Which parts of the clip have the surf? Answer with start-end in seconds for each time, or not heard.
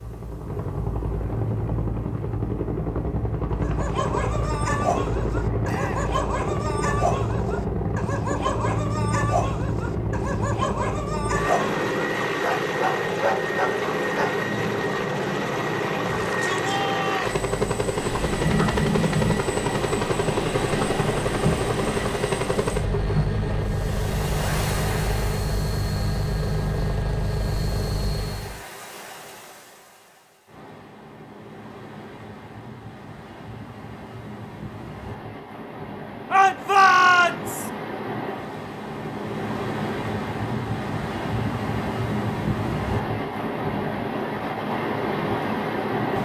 17.9-46.2.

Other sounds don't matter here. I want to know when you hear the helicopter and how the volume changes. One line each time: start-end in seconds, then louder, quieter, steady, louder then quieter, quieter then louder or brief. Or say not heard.
0.0-28.6 steady.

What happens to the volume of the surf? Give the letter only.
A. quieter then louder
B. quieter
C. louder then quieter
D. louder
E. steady
A.